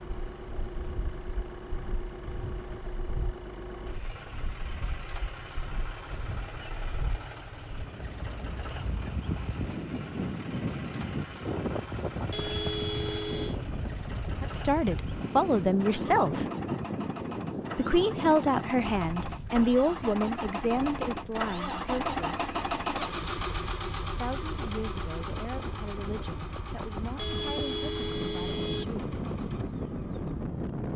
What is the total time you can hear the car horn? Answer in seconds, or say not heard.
3 s.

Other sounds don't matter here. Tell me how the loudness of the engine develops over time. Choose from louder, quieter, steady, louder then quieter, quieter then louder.
louder then quieter.